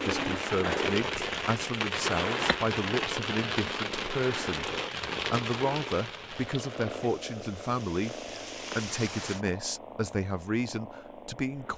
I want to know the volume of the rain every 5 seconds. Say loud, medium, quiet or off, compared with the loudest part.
loud, medium, off.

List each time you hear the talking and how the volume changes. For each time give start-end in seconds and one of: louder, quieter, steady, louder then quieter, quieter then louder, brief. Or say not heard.
0.0-11.7 steady.